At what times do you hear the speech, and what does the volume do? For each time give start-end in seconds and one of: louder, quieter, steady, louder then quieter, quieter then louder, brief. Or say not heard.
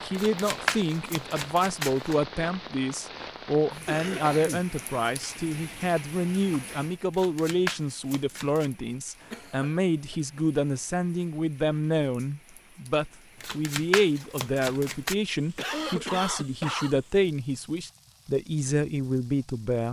0.0-19.8 steady.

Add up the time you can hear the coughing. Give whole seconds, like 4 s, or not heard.
3 s.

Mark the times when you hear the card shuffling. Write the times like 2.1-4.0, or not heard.
0.1-2.1, 7.1-8.7, 13.4-15.2.